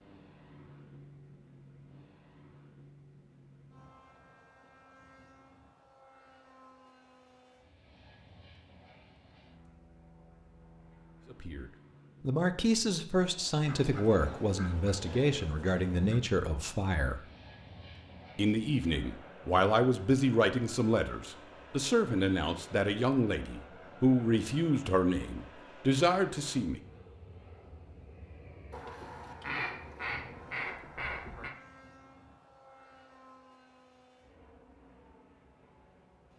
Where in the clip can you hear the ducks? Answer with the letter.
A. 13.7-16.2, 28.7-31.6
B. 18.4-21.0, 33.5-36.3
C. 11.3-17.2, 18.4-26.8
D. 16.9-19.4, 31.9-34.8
A.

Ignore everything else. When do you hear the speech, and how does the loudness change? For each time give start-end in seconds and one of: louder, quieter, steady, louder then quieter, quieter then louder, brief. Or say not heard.
11.3-17.2 steady
18.4-26.8 steady.